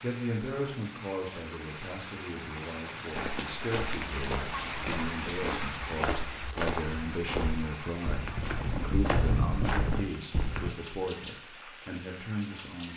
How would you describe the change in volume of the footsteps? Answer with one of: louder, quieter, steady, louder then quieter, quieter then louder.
louder.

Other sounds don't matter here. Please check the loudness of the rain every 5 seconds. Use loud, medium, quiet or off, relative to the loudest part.
loud, loud, medium.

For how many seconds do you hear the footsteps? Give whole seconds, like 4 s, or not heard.
8 s.